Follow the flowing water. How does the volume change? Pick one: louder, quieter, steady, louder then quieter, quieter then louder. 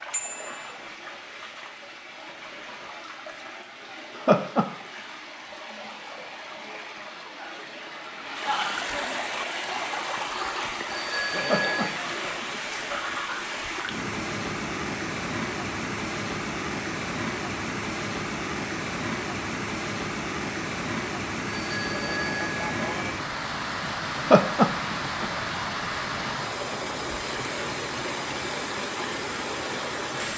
louder.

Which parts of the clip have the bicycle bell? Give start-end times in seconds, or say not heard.
0.1-0.6, 10.8-11.9, 21.6-23.1.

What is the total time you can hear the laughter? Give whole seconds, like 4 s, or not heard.
3 s.